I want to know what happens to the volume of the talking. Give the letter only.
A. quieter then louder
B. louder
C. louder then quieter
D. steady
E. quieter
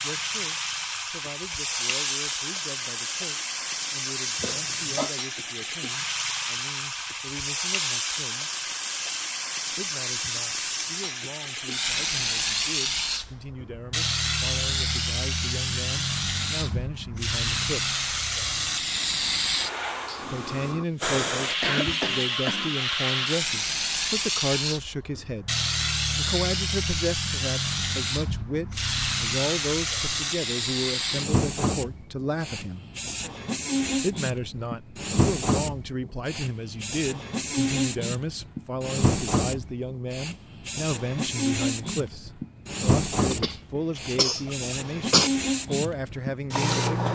B.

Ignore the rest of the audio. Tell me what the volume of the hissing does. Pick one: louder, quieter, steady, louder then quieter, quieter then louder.
steady.